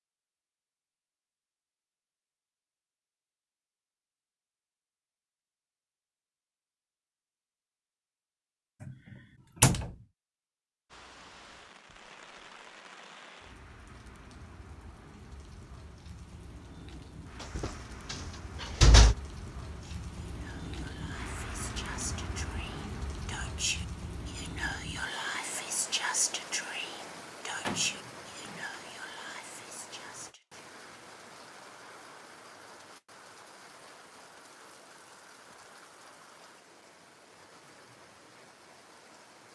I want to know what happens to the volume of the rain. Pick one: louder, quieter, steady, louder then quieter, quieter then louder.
louder then quieter.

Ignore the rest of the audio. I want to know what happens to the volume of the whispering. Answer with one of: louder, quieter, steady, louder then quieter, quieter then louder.
louder then quieter.